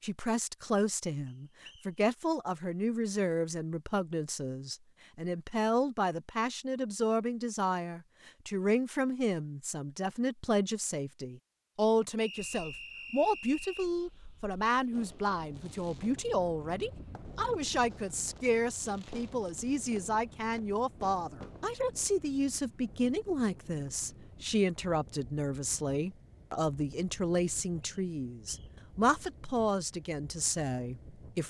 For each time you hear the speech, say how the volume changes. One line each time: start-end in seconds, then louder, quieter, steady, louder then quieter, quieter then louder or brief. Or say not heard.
0.0-31.4 steady.